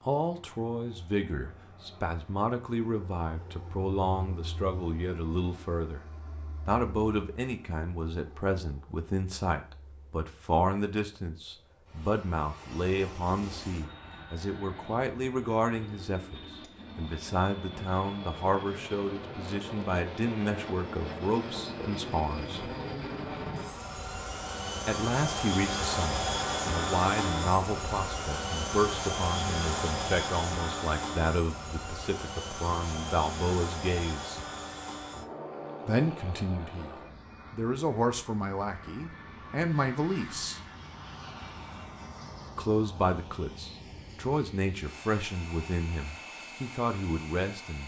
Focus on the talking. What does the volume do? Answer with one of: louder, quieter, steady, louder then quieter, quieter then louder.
steady.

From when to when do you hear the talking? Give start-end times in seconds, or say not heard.
0.1-6.0, 6.7-22.7, 24.9-34.4, 35.9-40.6, 42.5-47.8.